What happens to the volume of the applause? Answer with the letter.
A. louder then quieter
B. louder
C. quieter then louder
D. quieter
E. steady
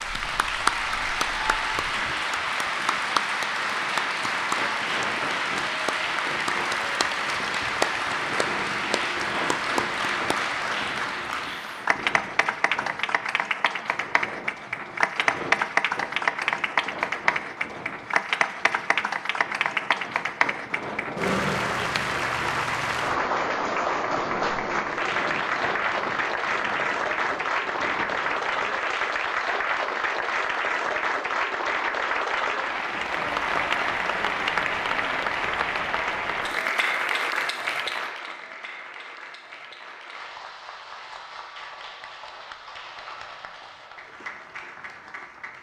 D.